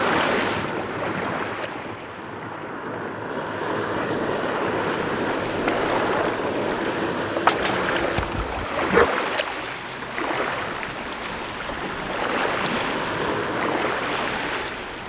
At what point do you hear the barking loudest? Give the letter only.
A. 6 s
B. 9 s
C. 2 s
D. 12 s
B.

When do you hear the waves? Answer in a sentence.
You can hear the waves from 0.0 to 15.0 s.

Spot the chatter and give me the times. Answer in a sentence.
You can't hear the chatter here.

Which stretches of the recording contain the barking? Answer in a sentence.
The barking can be heard from 7.5 to 9.1 s.